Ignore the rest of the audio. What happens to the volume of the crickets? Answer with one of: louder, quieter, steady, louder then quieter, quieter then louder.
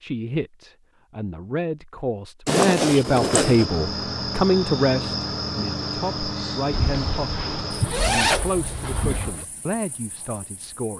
quieter.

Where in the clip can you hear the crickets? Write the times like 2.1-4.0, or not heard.
3.0-10.9.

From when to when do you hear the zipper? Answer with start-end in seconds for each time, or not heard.
2.5-3.6, 6.7-9.4.